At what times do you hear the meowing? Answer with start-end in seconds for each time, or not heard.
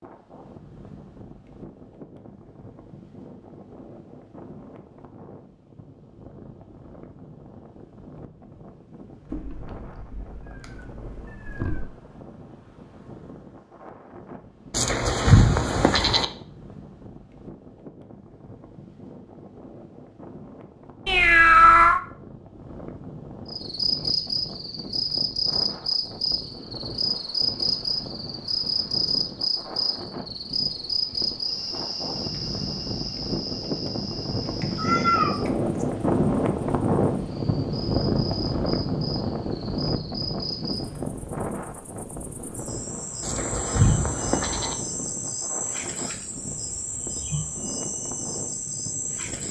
9.3-11.8, 21.1-22.0, 34.6-35.9.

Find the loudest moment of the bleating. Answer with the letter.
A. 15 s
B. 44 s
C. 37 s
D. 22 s
A.